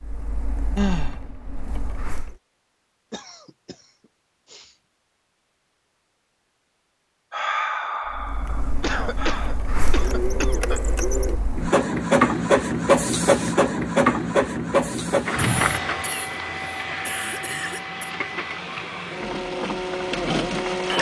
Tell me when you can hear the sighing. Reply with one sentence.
The sighing can be heard from 0.8 to 1.6 s, from 7.3 to 9.6 s and from 15.3 to 16.0 s.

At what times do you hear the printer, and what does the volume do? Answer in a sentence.
You can hear the printer briefly from 0.0 to 2.4 s; and from 8.1 to 20.9 s, getting louder then quieter.